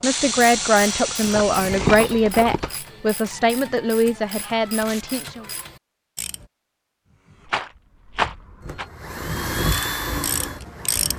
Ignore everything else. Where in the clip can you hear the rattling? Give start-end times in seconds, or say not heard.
1.2-2.8, 7.5-8.8.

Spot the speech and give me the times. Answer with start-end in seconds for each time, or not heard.
0.0-5.5.